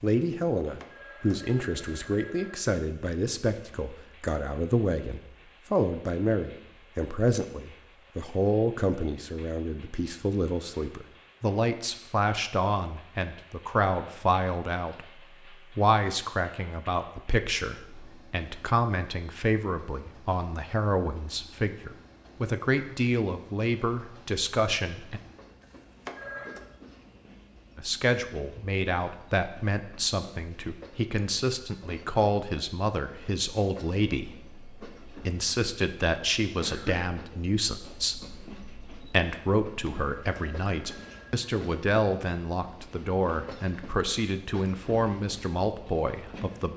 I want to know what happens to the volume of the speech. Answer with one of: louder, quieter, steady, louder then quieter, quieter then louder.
steady.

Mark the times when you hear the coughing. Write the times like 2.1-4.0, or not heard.
36.6-37.1.